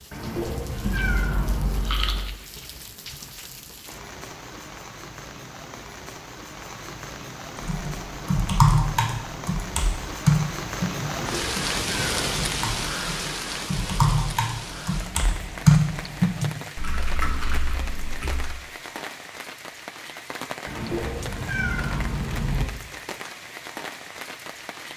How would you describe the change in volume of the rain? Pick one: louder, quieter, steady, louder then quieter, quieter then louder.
louder then quieter.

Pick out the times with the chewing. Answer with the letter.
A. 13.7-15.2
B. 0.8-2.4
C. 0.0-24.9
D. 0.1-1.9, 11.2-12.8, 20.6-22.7
B.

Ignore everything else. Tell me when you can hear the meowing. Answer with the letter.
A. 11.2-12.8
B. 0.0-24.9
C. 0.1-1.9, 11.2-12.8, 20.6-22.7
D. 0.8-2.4
C.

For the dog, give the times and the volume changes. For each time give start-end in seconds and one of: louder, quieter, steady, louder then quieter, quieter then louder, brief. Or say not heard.
not heard.